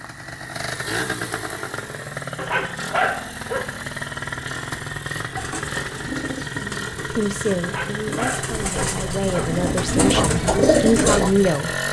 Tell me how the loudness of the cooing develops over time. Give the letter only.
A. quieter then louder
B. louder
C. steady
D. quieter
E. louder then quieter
A.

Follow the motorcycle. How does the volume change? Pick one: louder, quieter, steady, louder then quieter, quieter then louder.
steady.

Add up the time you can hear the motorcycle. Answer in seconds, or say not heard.
12 s.